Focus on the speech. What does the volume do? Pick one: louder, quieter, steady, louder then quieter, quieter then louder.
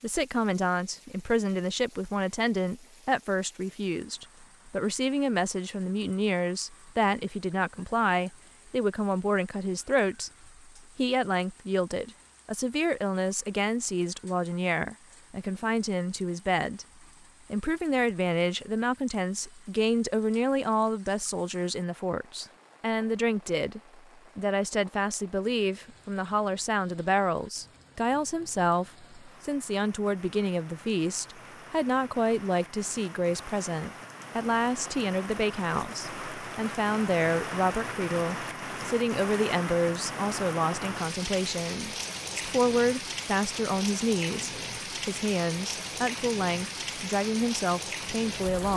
steady.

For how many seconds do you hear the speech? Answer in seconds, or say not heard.
48 s.